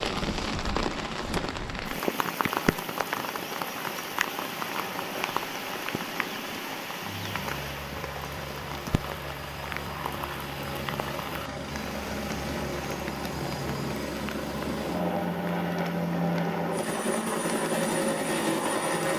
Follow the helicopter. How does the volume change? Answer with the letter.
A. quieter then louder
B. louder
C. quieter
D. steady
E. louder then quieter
B.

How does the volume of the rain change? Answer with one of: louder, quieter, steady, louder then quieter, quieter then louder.
quieter.